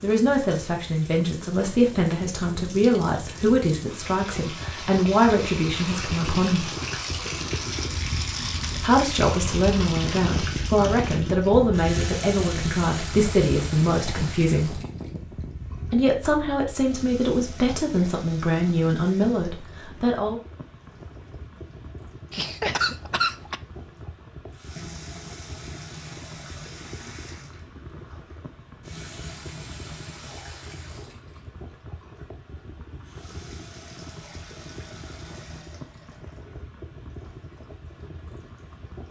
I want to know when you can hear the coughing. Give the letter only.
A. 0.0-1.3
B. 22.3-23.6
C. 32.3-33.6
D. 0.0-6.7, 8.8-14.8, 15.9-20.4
B.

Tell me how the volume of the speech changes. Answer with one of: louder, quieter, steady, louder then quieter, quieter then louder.
steady.